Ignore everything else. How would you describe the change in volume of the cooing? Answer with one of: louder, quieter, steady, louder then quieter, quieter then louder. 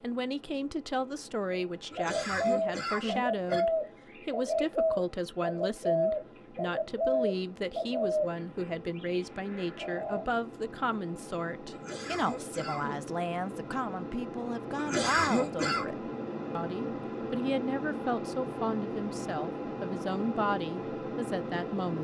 quieter.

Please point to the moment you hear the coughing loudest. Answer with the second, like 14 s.
15 s.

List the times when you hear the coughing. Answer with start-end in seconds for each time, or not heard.
1.9-3.6, 11.7-13.1, 14.8-15.8.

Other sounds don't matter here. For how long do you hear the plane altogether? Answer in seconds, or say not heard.
22 s.